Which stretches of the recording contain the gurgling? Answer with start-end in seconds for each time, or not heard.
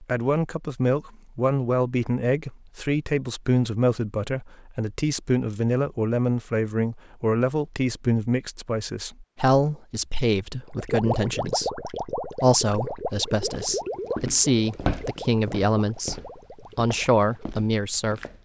10.8-17.6.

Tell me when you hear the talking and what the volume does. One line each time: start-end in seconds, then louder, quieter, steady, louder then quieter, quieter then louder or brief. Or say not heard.
0.0-16.1 steady
16.8-18.2 brief.